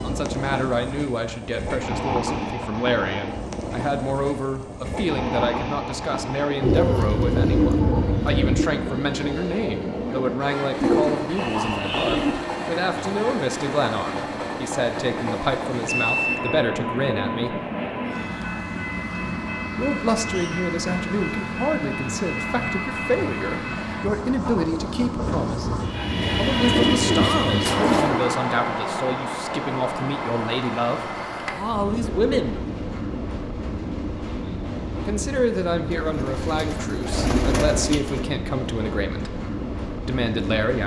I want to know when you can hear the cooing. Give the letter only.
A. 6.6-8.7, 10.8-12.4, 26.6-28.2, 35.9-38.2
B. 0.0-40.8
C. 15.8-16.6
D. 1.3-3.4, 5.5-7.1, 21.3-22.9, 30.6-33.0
A.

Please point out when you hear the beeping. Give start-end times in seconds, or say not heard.
15.8-16.6.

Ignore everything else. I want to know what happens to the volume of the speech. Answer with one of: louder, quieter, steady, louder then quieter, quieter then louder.
steady.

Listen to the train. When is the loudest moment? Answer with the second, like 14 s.
27 s.